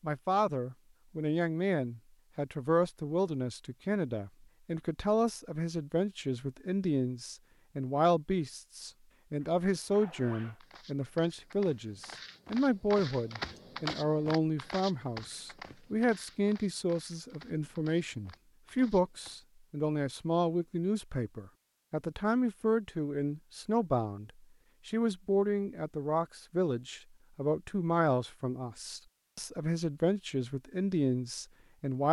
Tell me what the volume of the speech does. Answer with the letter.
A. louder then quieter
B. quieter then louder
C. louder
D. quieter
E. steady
E.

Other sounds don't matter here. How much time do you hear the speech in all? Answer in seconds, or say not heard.
32 s.